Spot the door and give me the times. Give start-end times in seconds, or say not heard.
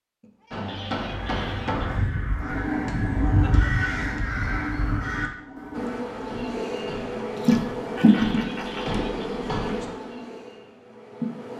not heard.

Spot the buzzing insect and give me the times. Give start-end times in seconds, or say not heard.
5.8-11.5.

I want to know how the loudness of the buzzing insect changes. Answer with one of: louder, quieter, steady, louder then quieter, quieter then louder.
louder then quieter.